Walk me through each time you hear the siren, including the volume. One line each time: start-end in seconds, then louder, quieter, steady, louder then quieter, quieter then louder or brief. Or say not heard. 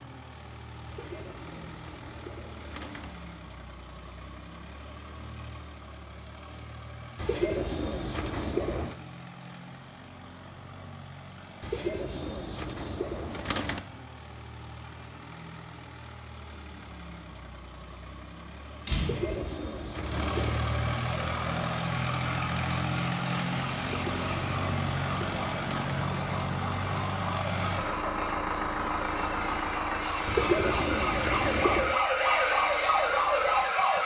21.1-34.0 louder.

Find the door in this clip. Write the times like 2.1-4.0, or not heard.
18.9-19.4.